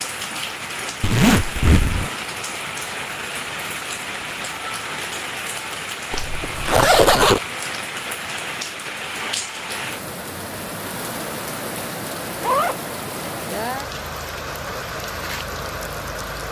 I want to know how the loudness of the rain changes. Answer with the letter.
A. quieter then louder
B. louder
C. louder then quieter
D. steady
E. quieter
D.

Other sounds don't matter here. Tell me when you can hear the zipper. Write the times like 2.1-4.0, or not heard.
1.0-2.1, 6.1-7.4, 12.4-13.6.